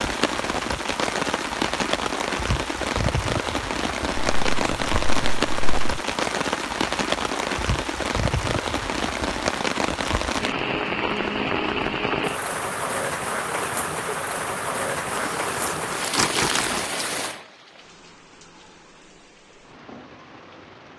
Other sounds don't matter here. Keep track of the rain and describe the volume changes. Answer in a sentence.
The loudness of the rain goes down.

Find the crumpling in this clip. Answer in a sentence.
The crumpling can be heard from 4.2 to 5.8 s and from 15.2 to 16.8 s.